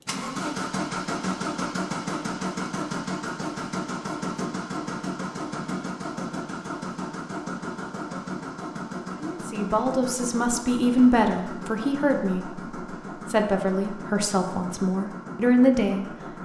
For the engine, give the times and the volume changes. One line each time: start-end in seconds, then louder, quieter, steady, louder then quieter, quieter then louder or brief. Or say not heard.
0.1-16.4 quieter.